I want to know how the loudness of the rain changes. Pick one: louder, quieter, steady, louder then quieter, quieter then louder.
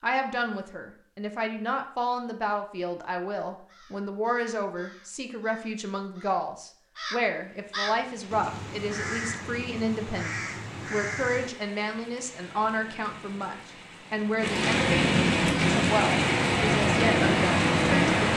louder.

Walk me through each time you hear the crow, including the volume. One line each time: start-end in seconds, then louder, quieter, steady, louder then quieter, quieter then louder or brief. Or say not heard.
3.5-11.5 louder.